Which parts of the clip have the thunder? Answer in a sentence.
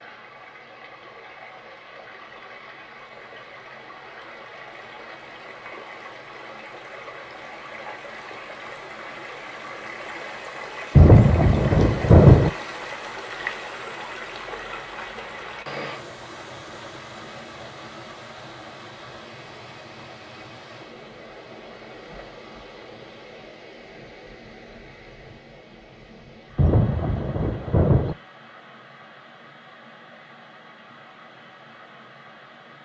The thunder can be heard from 10.9 to 12.5 s and from 26.6 to 28.1 s.